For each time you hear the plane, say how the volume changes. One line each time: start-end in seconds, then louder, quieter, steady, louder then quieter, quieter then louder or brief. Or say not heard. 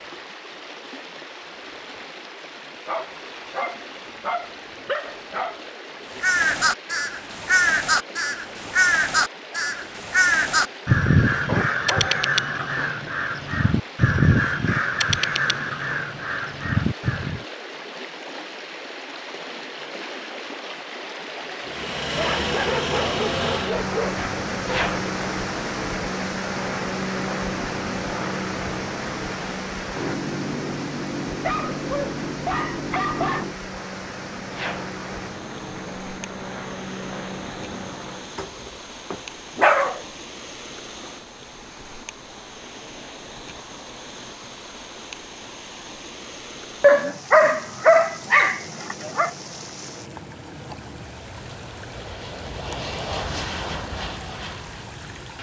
21.6-38.4 quieter
47.0-55.3 louder.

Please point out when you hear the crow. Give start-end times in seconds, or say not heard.
6.2-17.4.